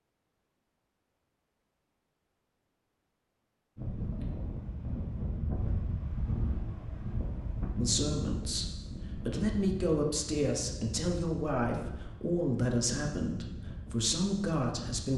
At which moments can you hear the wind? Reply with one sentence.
You can hear the wind from 3.8 to 15.1 s.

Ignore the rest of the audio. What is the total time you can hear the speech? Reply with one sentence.
You can hear the speech for 7 seconds altogether.